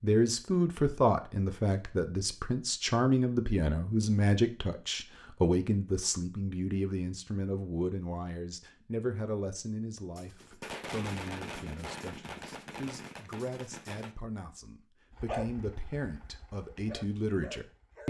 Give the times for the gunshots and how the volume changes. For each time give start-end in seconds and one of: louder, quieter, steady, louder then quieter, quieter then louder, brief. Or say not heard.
10.2-14.2 quieter.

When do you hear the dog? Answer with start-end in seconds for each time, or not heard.
15.2-18.0.